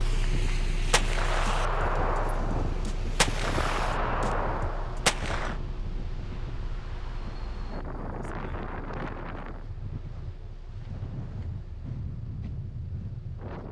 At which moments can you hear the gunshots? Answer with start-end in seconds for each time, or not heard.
0.9-5.6.